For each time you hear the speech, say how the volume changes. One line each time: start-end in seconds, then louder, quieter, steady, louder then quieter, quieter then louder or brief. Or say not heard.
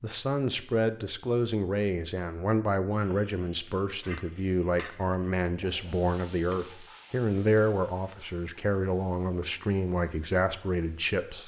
0.0-11.4 steady.